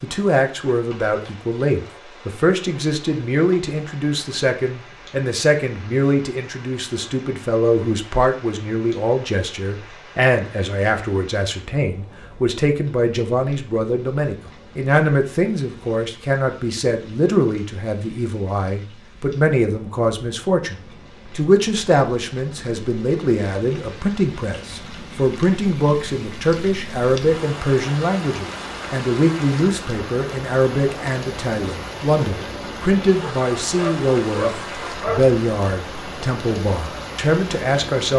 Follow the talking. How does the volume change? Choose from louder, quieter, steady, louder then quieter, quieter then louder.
steady.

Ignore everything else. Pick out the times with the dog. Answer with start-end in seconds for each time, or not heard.
33.2-35.4.